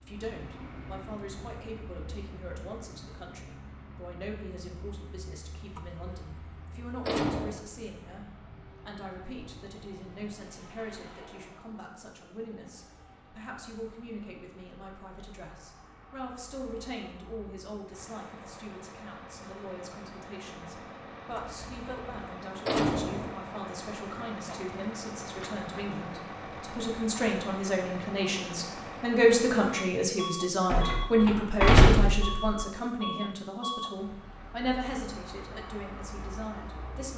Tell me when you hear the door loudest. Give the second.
32 s.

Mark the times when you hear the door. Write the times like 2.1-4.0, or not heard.
5.7-7.7, 21.3-23.3, 30.7-32.6.